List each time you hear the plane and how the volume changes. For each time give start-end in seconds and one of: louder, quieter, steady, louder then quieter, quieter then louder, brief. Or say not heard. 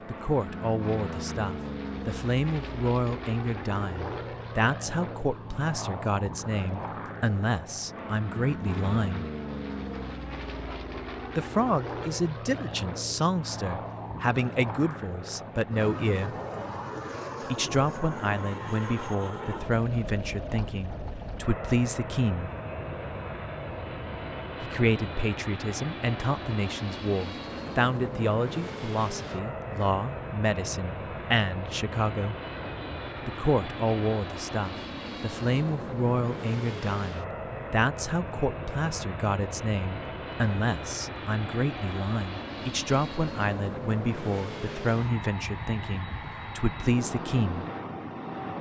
0.0-48.5 steady.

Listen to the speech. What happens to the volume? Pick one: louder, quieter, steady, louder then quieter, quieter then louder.
steady.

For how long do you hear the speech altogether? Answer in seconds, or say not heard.
41 s.